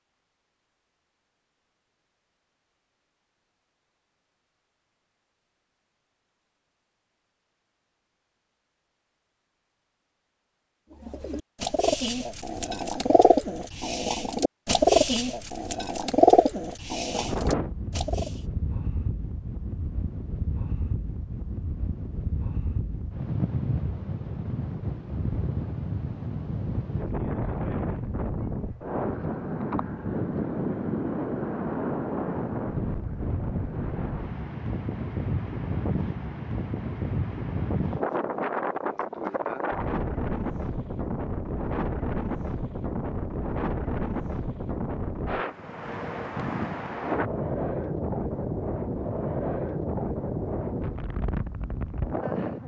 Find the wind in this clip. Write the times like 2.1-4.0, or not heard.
17.1-52.6.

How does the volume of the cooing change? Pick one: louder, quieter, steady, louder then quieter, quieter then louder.
louder then quieter.